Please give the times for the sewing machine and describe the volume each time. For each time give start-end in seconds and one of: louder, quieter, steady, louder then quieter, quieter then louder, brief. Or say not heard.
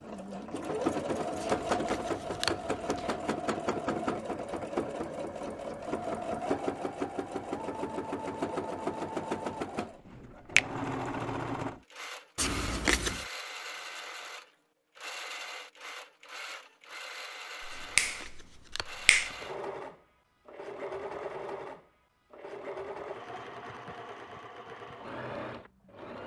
0.0-26.2 quieter.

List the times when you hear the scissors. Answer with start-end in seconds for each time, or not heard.
1.4-3.1, 12.3-13.2, 17.7-19.5.